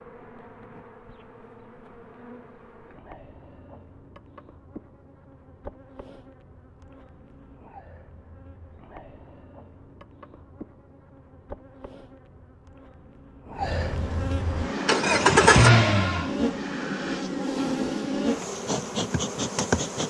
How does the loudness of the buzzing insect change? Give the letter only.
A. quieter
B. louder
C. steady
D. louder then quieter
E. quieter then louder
B.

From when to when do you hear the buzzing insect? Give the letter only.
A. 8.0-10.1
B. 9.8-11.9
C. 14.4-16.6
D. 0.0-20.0
D.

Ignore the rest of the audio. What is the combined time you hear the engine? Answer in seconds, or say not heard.
2 s.